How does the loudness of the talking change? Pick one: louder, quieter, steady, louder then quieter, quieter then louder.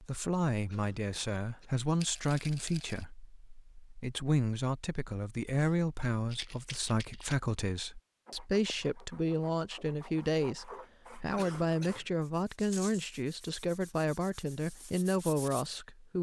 steady.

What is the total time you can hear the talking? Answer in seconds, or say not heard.
16 s.